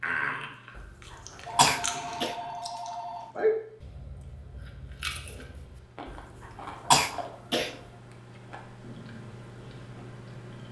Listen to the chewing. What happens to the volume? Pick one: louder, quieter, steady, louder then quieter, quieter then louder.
louder then quieter.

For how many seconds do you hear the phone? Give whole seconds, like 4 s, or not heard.
2 s.